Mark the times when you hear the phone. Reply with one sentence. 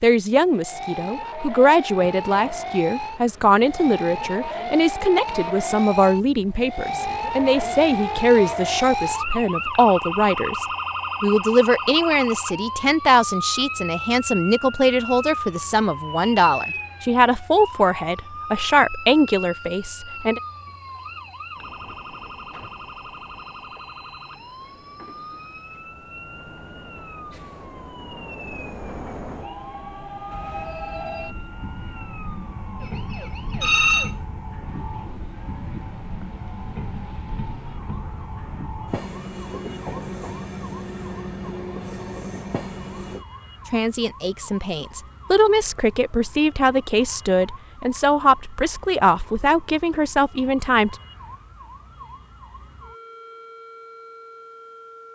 You can hear the phone from 33.6 to 34.1 s.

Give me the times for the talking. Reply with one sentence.
The talking can be heard from 0.0 to 20.4 s and from 43.7 to 51.0 s.